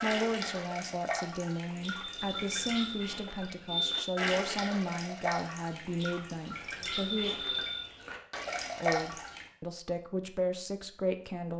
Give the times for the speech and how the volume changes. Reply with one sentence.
You can hear the speech from 0.0 to 7.3 s, at a steady volume; and briefly from 8.8 to 11.5 s.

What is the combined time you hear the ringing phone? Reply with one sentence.
The ringing phone can be heard for 3 seconds in total.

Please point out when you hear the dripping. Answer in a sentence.
You can hear the dripping from 0.0 to 9.5 s.